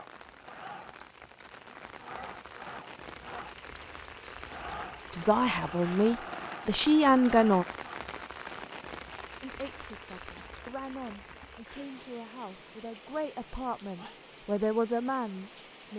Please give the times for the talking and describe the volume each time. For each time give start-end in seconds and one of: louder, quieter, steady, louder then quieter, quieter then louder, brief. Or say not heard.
5.1-7.7 brief
9.4-15.9 louder.